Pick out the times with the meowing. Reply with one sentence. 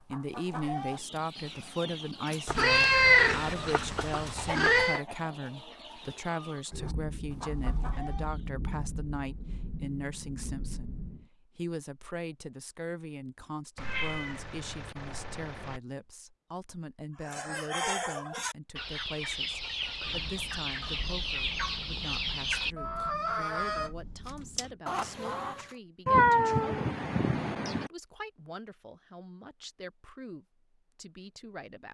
You can hear the meowing from 2.5 to 5.0 s, from 13.8 to 15.8 s and from 26.1 to 27.9 s.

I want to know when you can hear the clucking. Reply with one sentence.
You can hear the clucking from 0.0 to 8.4 s and from 17.2 to 25.8 s.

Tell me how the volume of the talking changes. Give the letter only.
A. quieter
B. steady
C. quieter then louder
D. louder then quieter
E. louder
A.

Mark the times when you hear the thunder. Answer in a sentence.
You can hear the thunder from 6.7 to 11.2 s and from 20.0 to 24.8 s.